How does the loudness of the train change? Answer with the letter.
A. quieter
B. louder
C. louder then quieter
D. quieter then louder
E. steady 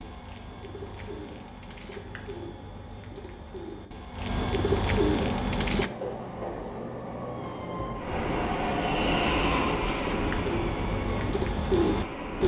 C.